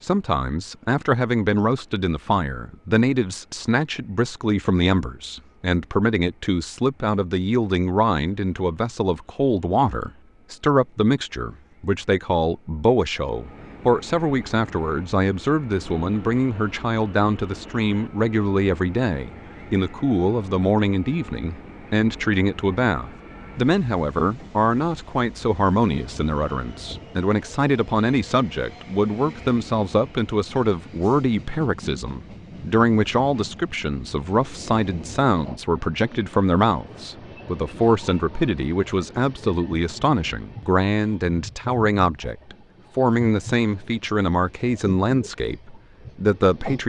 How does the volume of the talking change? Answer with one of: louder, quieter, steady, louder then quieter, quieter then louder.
steady.